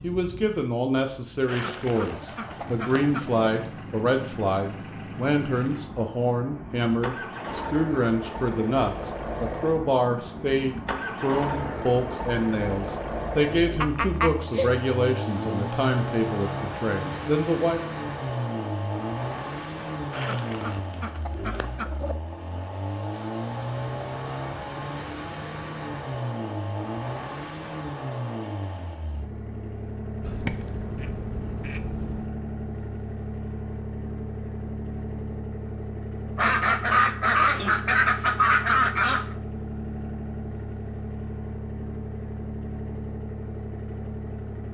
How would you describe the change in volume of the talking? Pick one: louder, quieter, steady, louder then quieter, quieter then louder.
steady.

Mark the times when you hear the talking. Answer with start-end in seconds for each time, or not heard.
0.0-17.8.